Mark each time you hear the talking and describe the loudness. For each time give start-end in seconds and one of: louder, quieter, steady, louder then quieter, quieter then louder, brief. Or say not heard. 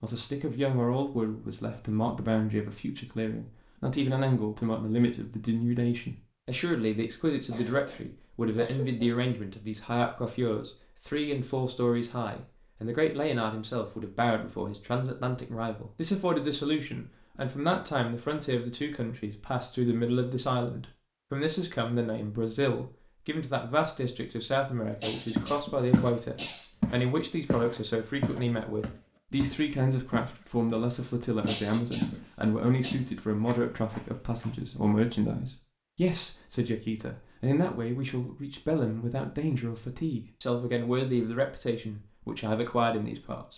0.0-43.5 steady.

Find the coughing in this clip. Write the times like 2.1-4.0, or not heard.
7.5-9.2, 25.0-26.6, 31.4-33.0.